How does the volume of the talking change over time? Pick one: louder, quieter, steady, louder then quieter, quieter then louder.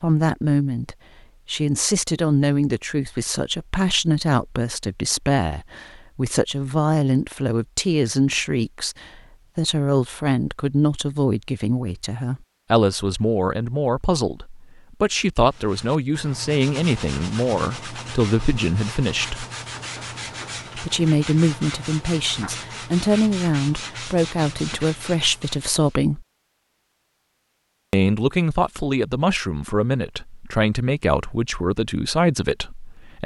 steady.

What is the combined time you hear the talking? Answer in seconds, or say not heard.
30 s.